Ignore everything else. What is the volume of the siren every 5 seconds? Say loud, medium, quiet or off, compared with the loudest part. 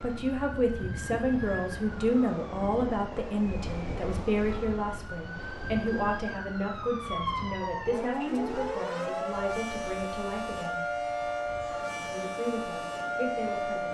medium, loud, loud.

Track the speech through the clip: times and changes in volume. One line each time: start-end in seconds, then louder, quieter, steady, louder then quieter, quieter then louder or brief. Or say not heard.
0.0-10.8 quieter
11.9-13.8 brief.